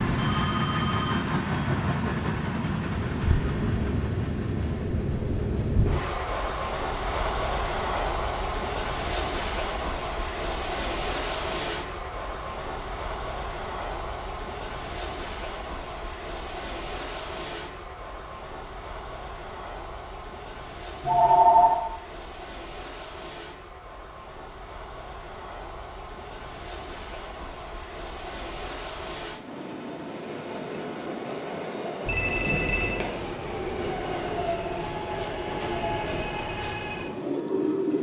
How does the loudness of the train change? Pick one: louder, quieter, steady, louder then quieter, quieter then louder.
quieter then louder.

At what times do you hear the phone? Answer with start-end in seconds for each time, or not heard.
0.1-1.2, 21.0-21.8, 32.0-33.0.